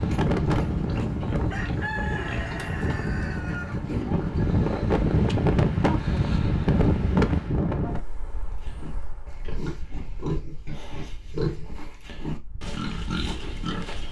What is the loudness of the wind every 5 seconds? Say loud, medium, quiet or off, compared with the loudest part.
loud, loud, quiet.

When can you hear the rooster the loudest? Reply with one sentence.
The volume of the rooster peaks at 2 seconds.